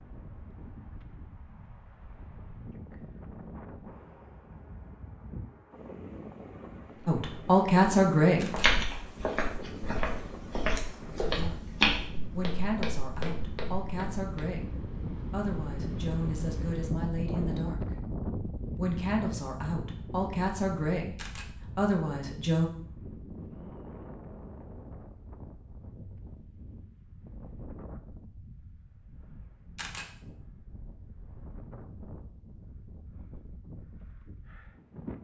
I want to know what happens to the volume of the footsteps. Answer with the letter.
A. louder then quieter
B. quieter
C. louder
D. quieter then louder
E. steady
A.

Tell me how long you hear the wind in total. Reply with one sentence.
The wind can be heard for 35 seconds in total.